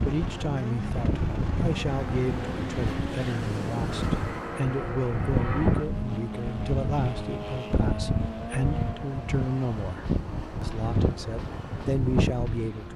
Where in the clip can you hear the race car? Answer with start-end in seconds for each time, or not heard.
0.0-12.9.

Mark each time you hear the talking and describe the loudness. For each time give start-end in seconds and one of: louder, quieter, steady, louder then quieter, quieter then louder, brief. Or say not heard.
0.0-12.9 steady.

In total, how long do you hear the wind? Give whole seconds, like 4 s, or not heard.
13 s.